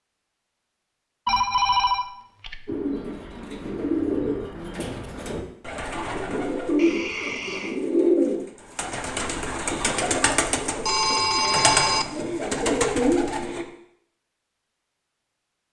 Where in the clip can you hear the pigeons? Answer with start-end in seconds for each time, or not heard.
2.6-13.7.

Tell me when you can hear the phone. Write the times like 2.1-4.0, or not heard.
1.2-2.8, 6.8-7.8, 10.8-12.1.